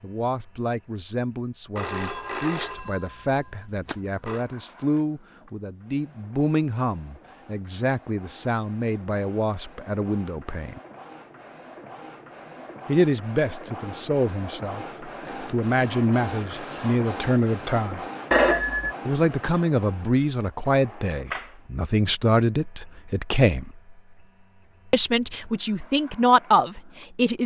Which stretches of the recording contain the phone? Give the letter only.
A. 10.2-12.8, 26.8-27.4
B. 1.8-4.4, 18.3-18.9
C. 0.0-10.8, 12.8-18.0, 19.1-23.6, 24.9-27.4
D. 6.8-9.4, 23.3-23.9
B.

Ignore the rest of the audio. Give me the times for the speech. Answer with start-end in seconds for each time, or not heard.
0.0-10.8, 12.8-18.0, 19.1-23.6, 24.9-27.4.